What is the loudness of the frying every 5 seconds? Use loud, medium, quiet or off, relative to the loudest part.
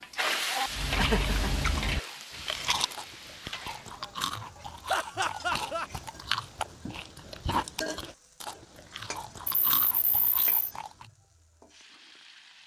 loud, medium, quiet.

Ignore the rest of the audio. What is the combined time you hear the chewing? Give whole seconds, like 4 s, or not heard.
10 s.